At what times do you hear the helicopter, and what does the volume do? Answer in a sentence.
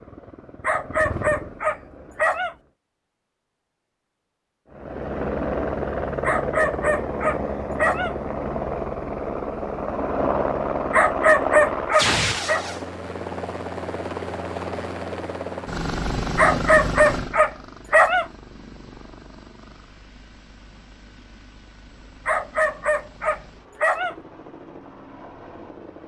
You can hear the helicopter briefly from 0.0 to 2.7 s; and from 4.7 to 26.0 s, getting quieter.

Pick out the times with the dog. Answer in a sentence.
You can hear the dog from 0.6 to 2.5 s, from 6.2 to 8.2 s, from 10.9 to 12.7 s, from 16.4 to 18.2 s and from 22.2 to 24.1 s.